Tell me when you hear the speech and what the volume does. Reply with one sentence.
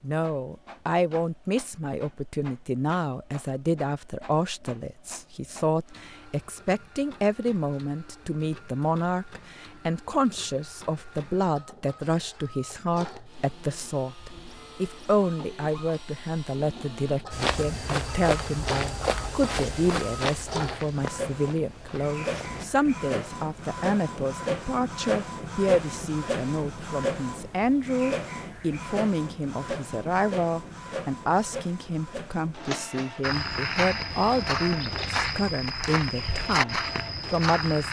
You can hear the speech from 0.0 to 37.8 s, at a steady volume.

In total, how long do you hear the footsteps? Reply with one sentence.
You can hear the footsteps for 10 seconds altogether.